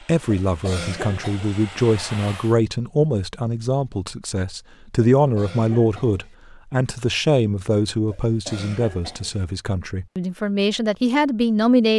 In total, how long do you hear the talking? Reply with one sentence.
You can hear the talking for 12 seconds altogether.